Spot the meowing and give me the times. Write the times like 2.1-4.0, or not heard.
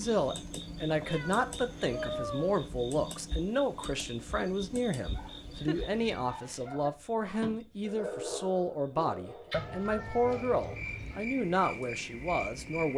1.0-2.6, 5.2-6.7, 9.5-11.2.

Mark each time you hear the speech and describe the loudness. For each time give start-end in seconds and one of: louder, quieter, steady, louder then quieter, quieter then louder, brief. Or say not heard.
0.0-12.9 steady.